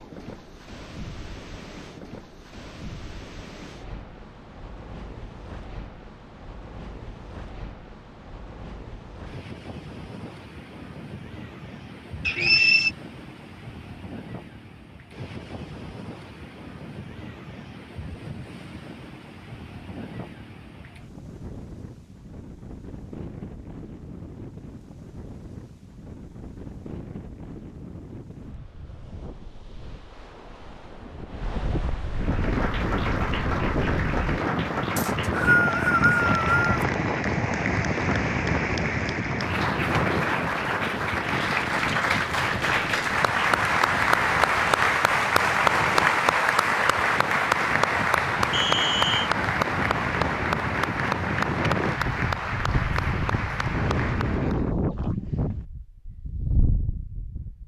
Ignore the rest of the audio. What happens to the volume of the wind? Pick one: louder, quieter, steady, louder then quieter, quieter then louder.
louder.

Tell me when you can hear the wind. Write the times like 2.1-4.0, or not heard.
0.0-57.6.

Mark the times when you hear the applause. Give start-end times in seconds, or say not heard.
32.1-54.6.